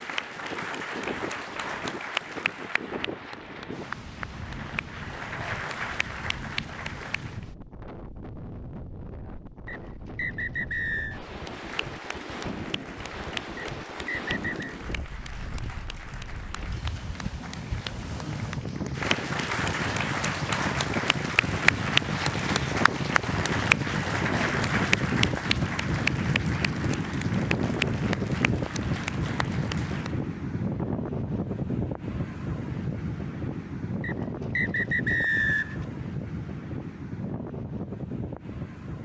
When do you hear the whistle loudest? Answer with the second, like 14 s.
35 s.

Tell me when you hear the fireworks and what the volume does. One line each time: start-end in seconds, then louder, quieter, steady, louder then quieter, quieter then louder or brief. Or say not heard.
not heard.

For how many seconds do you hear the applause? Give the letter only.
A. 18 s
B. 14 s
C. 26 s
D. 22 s
C.